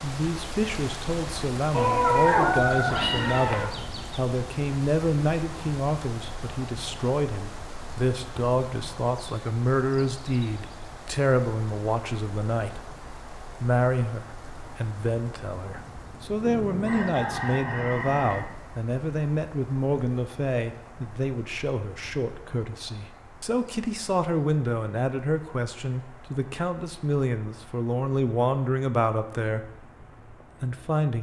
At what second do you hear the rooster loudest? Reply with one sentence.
The volume of the rooster peaks at 3 seconds.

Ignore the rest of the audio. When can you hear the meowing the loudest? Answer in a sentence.
The volume of the meowing peaks at 2 seconds.